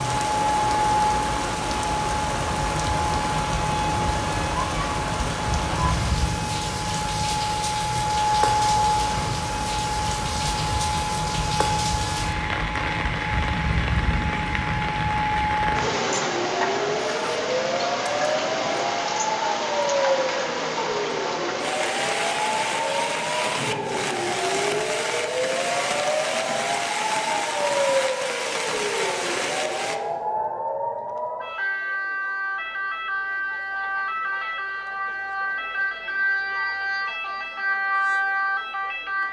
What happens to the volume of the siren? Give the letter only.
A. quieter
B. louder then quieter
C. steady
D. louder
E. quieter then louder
C.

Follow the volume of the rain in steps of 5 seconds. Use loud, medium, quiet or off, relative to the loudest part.
loud, loud, loud, loud, loud, loud, off, off.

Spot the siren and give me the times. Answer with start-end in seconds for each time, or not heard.
0.0-39.2.